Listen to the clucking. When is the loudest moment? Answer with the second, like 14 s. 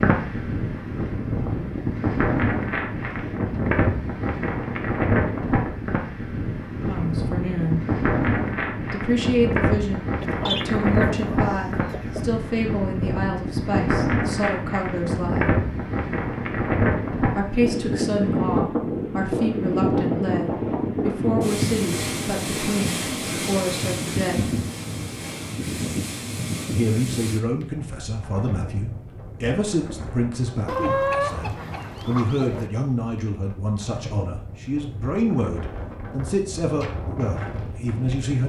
31 s.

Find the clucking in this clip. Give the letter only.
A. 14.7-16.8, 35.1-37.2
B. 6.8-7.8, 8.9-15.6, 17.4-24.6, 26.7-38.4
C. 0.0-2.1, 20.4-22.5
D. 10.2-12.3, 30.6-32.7
D.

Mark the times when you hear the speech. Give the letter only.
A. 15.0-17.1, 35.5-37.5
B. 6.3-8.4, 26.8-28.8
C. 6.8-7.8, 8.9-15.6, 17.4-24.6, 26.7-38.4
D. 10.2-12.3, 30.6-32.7
C.